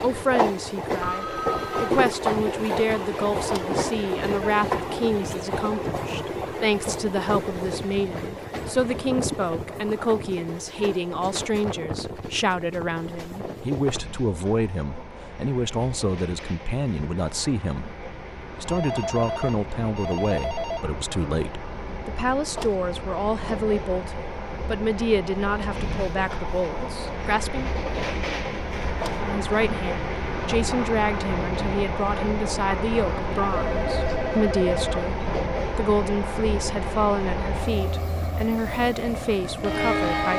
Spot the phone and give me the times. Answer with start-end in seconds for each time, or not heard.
1.0-1.9, 18.6-20.9, 33.3-34.9.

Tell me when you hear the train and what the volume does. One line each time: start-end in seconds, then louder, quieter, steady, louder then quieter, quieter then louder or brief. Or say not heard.
0.0-40.3 quieter then louder.